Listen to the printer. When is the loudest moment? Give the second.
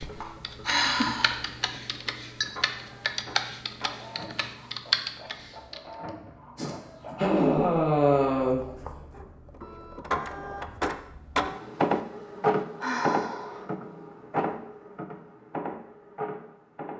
12 s.